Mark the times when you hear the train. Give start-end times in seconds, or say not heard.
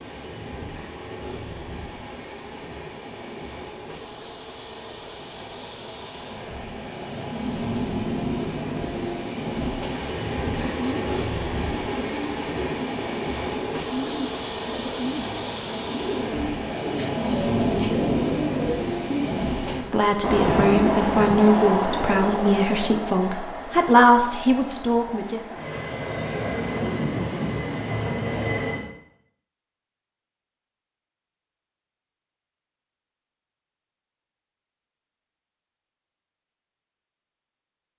0.0-28.9.